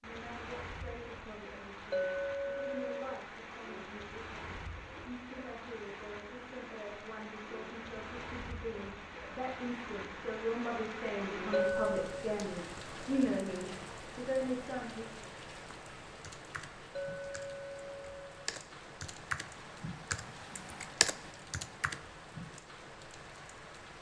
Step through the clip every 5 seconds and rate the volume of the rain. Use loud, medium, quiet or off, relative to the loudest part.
loud, loud, loud, medium, medium.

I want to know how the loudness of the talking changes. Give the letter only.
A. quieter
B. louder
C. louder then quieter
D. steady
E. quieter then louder
B.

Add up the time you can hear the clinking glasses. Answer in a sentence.
You can hear the clinking glasses for 3 seconds altogether.